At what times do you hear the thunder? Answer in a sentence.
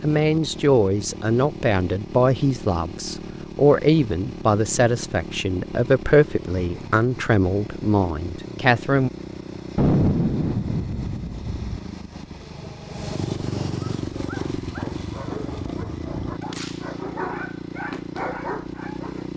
The thunder can be heard from 9.8 to 11.8 s.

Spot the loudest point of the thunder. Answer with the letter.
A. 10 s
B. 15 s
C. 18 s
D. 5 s
A.